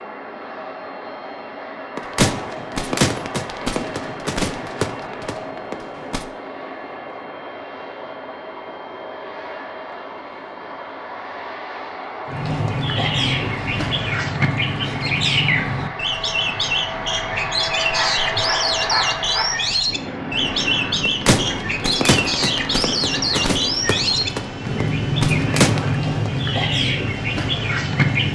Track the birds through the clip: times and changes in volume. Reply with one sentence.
The birds can be heard from 12.2 to 28.2 s, at a steady volume.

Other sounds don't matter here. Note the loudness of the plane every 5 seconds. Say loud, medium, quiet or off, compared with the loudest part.
medium, medium, medium, loud, loud, medium.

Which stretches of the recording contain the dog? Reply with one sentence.
You can hear the dog from 17.9 to 19.6 s.